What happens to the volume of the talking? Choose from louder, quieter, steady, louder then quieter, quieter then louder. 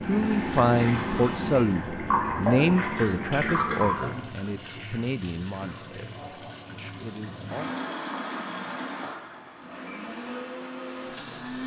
quieter.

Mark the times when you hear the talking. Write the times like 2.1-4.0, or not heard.
0.0-7.8.